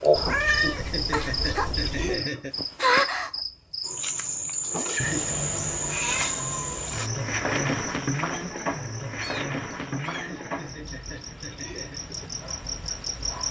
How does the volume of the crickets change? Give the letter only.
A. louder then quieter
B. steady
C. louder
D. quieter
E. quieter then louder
D.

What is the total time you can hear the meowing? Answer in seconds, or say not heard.
5 s.